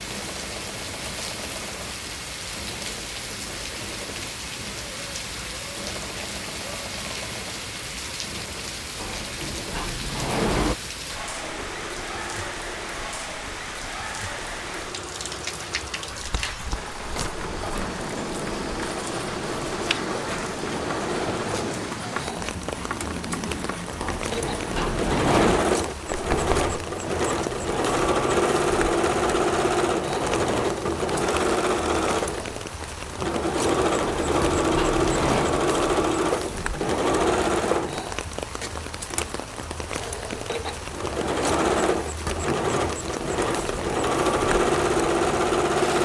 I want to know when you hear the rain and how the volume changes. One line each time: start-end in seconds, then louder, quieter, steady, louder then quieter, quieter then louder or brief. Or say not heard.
0.0-46.0 steady.